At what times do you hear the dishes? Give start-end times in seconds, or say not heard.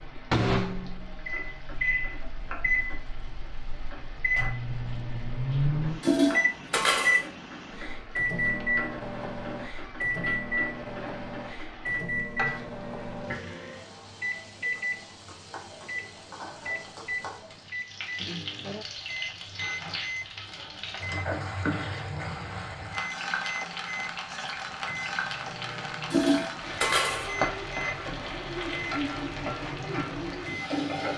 6.0-7.3, 26.1-27.4.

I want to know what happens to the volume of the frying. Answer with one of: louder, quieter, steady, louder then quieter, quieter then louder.
louder.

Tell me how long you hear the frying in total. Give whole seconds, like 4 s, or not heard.
31 s.